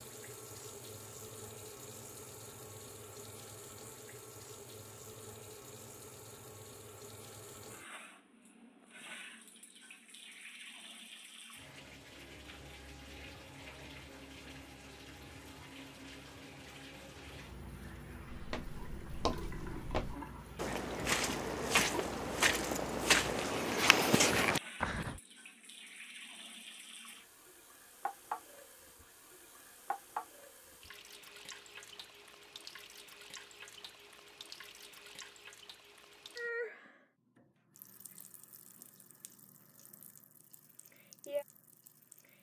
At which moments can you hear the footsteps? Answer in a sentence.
You can hear the footsteps from 18.3 to 25.1 s.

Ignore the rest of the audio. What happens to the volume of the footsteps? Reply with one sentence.
The volume of the footsteps goes up.